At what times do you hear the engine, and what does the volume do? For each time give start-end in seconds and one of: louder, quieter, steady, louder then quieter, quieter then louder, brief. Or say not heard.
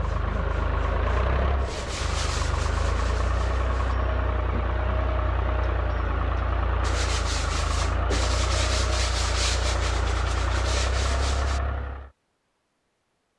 0.0-12.1 steady.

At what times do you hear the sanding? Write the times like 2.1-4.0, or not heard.
0.0-4.0, 6.8-11.6.